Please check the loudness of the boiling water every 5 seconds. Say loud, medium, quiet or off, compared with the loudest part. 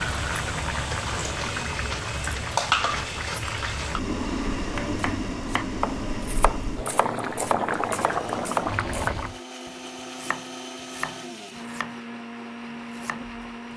loud, loud, off.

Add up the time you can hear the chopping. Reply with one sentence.
The chopping can be heard for 8 seconds in total.